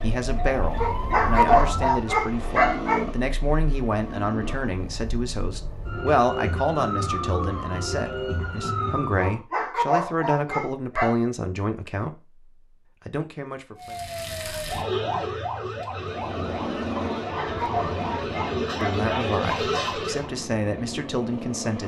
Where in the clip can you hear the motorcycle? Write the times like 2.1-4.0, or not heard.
0.0-4.8, 15.9-21.8.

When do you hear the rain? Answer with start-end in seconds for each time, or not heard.
not heard.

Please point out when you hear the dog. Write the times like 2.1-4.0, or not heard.
0.8-3.0, 9.2-11.2, 17.2-19.9.